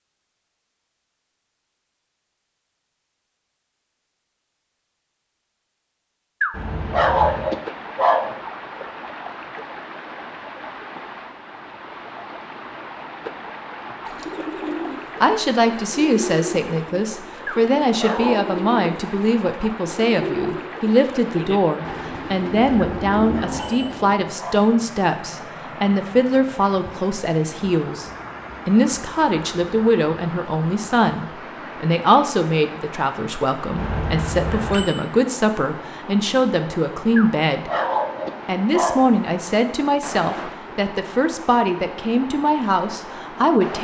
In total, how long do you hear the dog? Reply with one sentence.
The dog can be heard for 7 seconds in total.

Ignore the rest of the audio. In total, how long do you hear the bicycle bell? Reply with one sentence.
You can hear the bicycle bell for 3 seconds altogether.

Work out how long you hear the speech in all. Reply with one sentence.
You can hear the speech for 28 seconds altogether.